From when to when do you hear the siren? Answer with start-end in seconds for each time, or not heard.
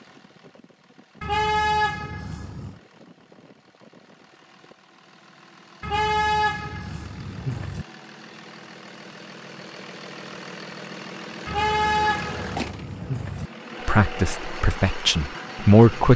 not heard.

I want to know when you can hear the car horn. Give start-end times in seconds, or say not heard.
1.2-2.8, 5.8-7.8, 11.4-13.5.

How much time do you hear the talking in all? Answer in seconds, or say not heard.
2 s.